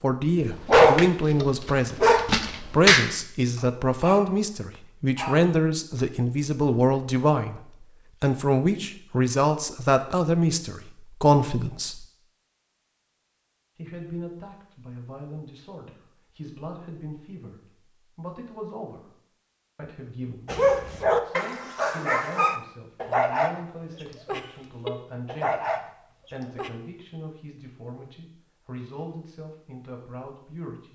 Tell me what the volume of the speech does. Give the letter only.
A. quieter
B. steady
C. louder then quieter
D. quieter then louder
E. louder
A.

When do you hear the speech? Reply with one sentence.
You can hear the speech from 0.0 to 7.6 s, from 8.2 to 12.1 s, from 13.8 to 19.1 s and from 19.8 to 30.9 s.